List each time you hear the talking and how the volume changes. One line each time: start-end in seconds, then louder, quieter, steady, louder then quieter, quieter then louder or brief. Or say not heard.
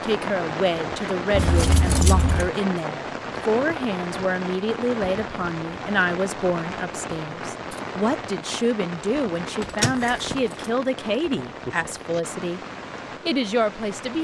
0.0-12.6 steady
13.2-14.2 brief.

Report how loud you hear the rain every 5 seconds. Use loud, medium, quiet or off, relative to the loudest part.
loud, loud, medium.